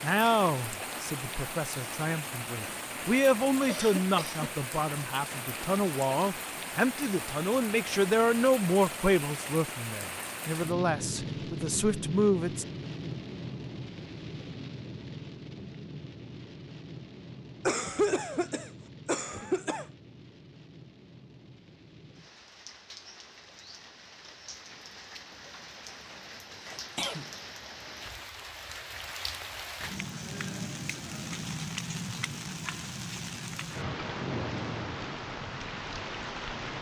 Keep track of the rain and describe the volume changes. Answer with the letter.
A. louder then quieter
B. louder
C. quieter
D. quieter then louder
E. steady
D.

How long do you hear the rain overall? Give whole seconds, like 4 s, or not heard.
37 s.